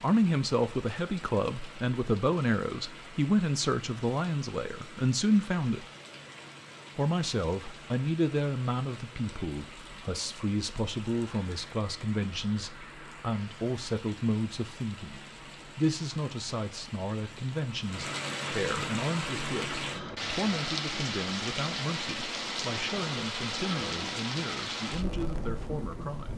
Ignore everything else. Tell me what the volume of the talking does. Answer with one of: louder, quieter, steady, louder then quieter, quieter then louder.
quieter.